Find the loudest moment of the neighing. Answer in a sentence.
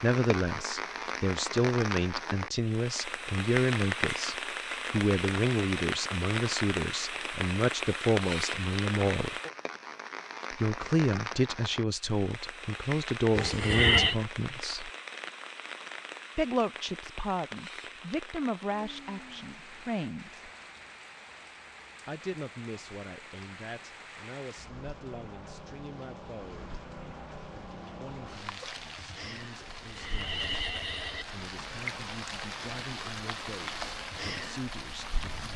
The loudest moment of the neighing is at 14 seconds.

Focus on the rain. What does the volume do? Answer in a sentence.
The volume of the rain goes down, then up.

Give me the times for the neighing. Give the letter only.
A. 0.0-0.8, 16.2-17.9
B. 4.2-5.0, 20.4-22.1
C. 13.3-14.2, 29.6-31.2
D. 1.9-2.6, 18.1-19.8
C.